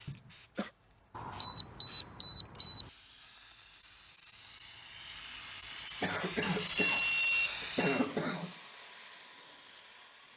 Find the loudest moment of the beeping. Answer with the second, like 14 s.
2 s.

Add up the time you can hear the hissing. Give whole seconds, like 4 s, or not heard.
10 s.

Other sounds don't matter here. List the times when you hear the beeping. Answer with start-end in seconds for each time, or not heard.
1.1-2.9, 6.5-8.0.